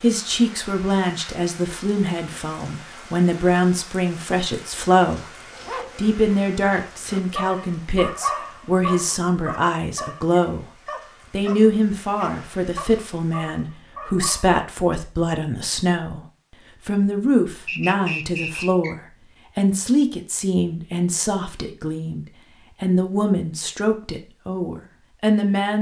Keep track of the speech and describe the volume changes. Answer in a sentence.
The loudness of the speech stays about the same.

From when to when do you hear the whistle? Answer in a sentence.
The whistle can be heard from 17.6 to 18.9 s.